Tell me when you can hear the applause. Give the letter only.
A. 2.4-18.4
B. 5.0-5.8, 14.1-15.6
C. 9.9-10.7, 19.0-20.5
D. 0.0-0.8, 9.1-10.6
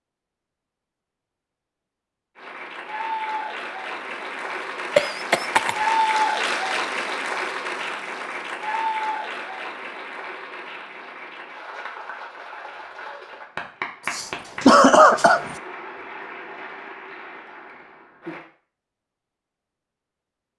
A.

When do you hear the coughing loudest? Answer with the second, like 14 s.
15 s.